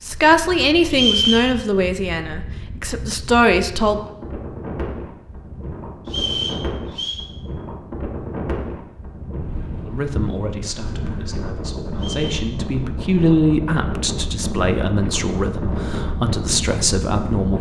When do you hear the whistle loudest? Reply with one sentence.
The loudest moment of the whistle is at 1 second.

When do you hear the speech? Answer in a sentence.
The speech can be heard from 0.0 to 4.0 s and from 9.8 to 17.5 s.